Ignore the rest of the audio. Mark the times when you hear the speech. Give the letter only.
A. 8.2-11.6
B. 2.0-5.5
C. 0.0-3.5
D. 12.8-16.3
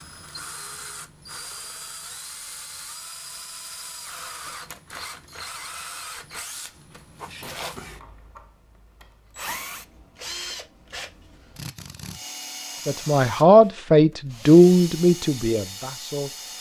D.